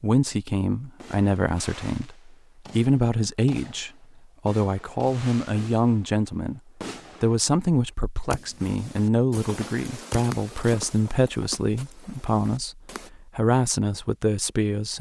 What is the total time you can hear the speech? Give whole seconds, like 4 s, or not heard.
14 s.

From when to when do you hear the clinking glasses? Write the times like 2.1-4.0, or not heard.
not heard.